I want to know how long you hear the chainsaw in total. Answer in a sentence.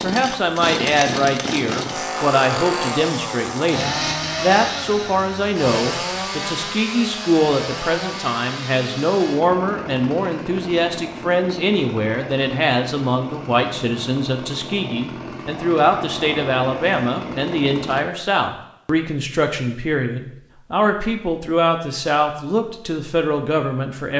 You can hear the chainsaw for 18 seconds altogether.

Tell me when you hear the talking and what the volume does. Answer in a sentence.
The talking can be heard from 0.0 to 24.1 s, at a steady volume.